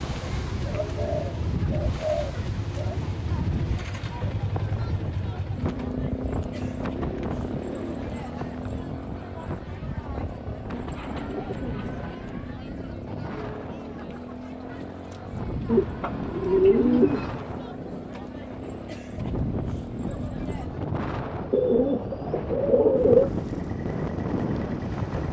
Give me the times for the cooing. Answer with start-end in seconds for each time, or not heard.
0.2-3.0, 7.0-8.3, 10.7-12.6, 15.7-17.3, 21.5-23.3.